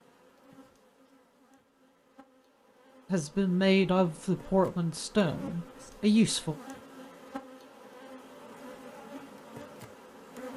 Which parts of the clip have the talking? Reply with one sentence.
You can hear the talking from 3.1 to 6.5 s.